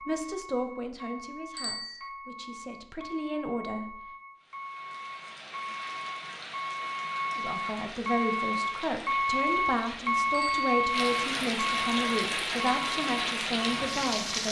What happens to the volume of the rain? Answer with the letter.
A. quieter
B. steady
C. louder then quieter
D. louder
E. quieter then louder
D.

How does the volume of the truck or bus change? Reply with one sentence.
The loudness of the truck or bus goes up.